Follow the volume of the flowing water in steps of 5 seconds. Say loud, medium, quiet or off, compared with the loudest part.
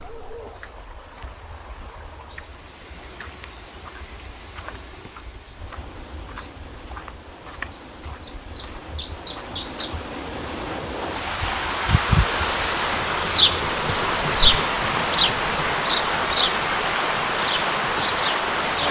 quiet, quiet, loud, loud.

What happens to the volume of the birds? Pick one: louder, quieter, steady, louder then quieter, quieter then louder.
louder.